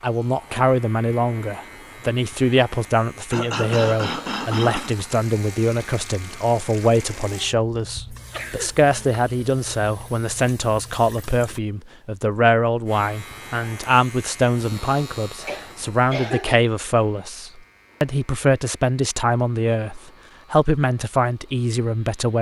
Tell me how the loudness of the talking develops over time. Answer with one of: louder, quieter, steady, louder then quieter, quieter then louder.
steady.